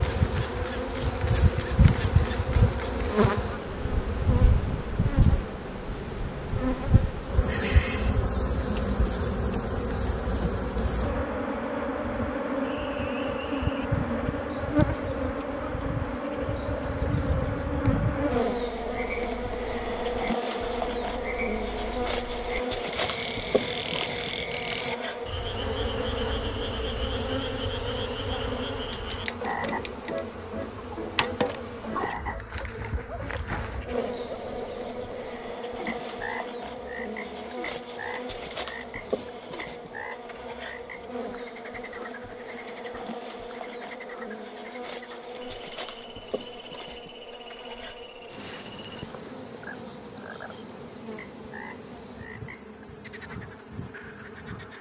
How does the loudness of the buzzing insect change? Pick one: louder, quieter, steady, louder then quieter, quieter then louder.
quieter.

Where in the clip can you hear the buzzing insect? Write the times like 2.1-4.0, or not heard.
0.0-54.7.